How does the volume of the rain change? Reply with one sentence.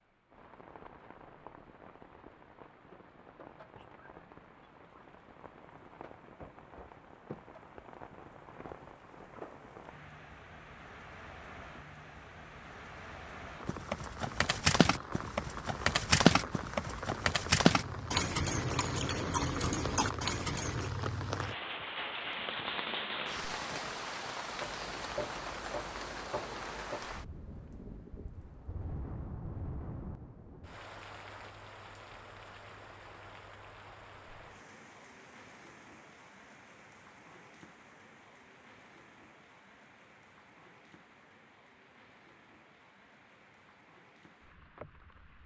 The loudness of the rain goes up, then down.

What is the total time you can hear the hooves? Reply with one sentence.
The hooves can be heard for 7 seconds in total.